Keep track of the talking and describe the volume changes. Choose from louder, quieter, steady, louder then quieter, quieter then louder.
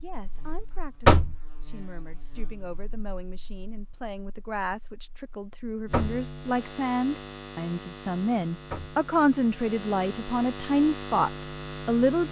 louder.